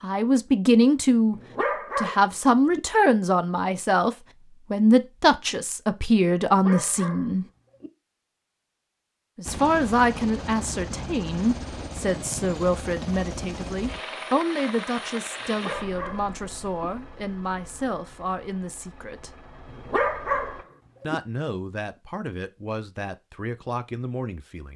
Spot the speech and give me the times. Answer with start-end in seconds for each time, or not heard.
0.0-1.4, 1.9-7.5, 9.3-19.4, 21.0-24.7.